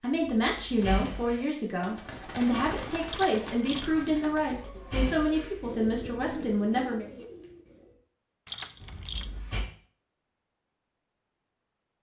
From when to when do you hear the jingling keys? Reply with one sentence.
You can hear the jingling keys from 3.0 to 4.0 s and from 8.4 to 9.4 s.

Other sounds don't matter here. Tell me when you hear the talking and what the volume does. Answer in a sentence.
You can hear the talking from 0.0 to 7.0 s, at a steady volume.